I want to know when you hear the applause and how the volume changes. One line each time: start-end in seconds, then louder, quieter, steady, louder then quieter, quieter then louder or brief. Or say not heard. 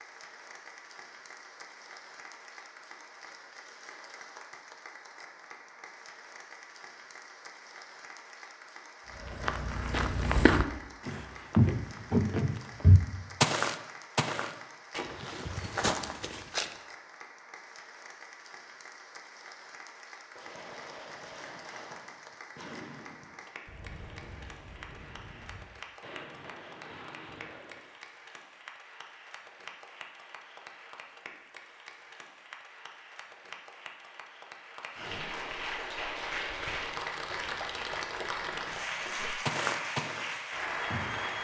0.0-41.3 louder.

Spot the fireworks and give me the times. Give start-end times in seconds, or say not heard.
20.3-27.9.